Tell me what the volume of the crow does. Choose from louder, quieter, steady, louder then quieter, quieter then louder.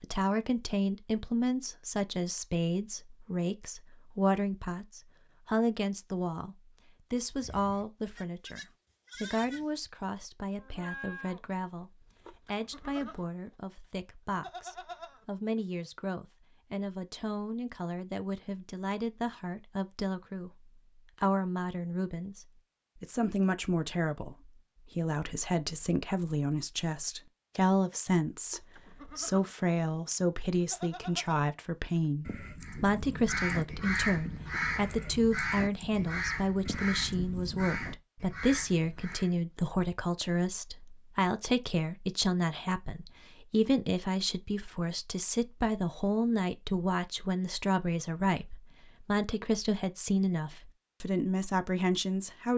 quieter.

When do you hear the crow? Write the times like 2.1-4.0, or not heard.
32.6-39.4.